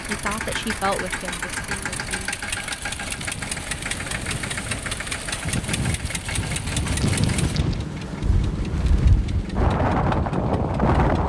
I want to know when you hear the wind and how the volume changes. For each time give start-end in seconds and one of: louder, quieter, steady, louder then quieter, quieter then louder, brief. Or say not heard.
0.0-11.2 louder.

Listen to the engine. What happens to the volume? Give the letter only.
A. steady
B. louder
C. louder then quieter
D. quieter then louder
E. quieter
E.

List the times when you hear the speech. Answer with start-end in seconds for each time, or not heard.
0.1-2.4.